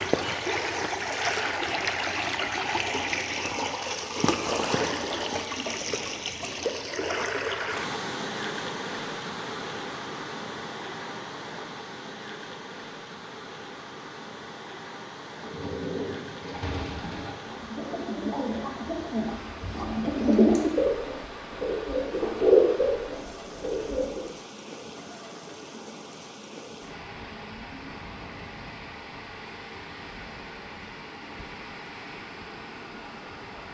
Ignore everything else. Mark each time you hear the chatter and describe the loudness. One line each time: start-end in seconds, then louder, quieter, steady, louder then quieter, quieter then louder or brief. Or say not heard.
not heard.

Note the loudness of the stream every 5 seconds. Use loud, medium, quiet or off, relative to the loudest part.
loud, loud, medium, quiet, quiet, quiet, quiet.